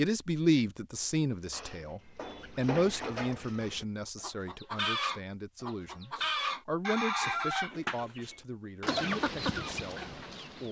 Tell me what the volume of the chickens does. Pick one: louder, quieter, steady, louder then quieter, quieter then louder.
louder.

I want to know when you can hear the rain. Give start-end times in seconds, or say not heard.
not heard.